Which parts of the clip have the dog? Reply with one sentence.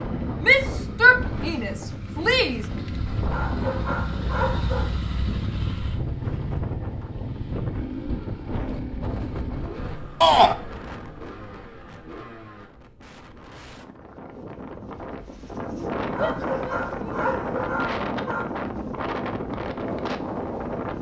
You can hear the dog from 3.3 to 4.9 s and from 16.1 to 18.4 s.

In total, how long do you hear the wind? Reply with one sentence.
The wind can be heard for 21 seconds in total.